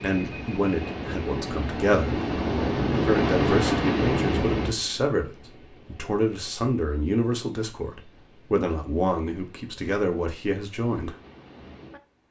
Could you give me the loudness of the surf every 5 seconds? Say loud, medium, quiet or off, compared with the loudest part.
loud, quiet, quiet.